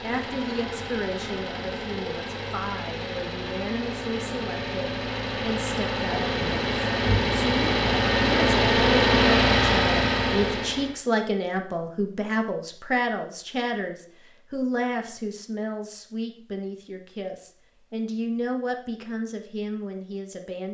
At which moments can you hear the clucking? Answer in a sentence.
You can't hear the clucking here.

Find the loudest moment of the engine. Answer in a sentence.
The loudest moment of the engine is at 9 seconds.